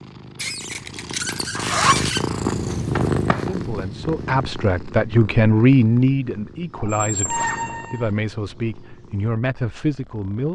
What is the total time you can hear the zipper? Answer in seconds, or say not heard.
3 s.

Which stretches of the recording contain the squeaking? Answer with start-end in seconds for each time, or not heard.
0.3-2.2, 6.8-8.1.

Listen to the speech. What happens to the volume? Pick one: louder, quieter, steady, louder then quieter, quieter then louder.
louder then quieter.